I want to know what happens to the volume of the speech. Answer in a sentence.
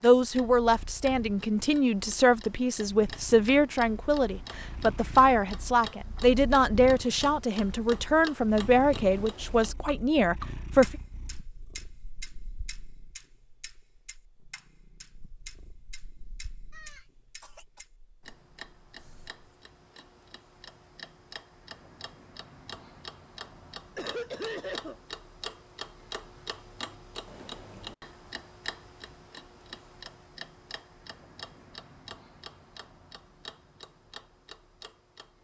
The volume of the speech stays about the same.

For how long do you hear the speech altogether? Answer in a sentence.
You can hear the speech for 11 seconds altogether.